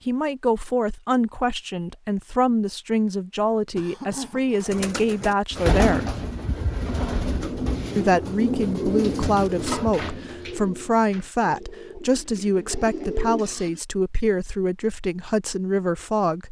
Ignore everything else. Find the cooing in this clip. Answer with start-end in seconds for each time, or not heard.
4.6-13.4.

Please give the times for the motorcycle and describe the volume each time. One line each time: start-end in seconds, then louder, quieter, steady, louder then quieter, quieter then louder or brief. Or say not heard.
not heard.